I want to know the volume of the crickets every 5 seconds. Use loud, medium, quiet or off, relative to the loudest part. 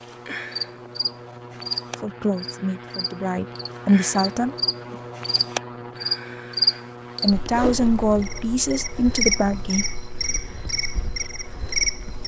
medium, loud, loud.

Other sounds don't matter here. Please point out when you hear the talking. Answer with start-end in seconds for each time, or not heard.
2.0-5.0, 7.2-9.8.